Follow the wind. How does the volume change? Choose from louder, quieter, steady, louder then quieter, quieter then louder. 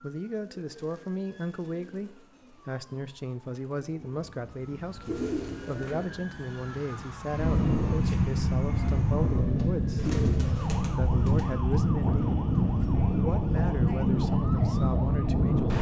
louder.